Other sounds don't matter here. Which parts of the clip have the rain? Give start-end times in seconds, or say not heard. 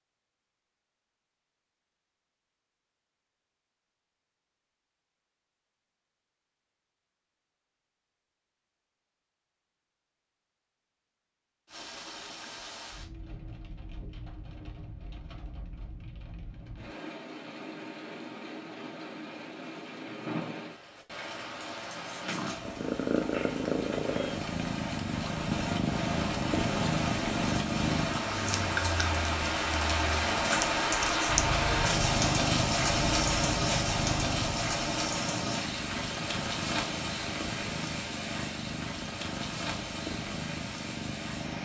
11.7-41.6.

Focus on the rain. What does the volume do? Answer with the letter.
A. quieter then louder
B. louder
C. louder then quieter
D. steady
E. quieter
C.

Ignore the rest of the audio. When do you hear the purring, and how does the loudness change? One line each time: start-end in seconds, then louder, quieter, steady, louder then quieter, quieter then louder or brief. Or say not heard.
22.2-41.6 quieter.